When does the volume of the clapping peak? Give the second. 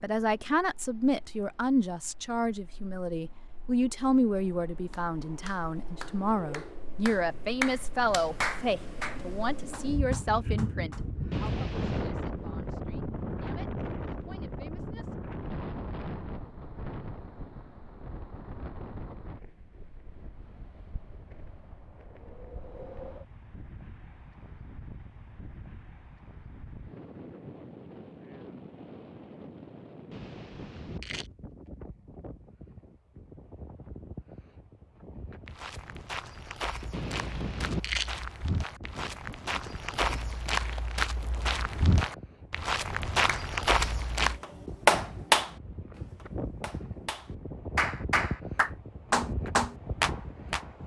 45 s.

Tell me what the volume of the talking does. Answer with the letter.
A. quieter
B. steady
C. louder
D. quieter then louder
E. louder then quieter
A.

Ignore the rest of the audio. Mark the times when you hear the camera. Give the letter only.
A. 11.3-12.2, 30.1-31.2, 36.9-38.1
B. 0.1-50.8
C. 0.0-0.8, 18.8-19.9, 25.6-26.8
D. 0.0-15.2
A.